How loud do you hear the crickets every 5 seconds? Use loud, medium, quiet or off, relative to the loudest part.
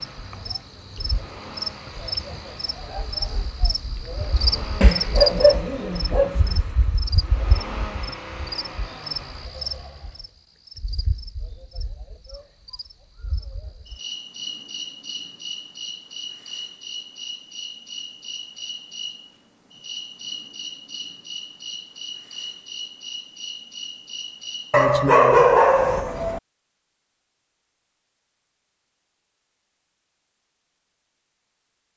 loud, loud, medium, medium, medium, off, off.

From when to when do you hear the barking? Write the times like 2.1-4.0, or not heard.
4.8-6.5, 24.7-26.4.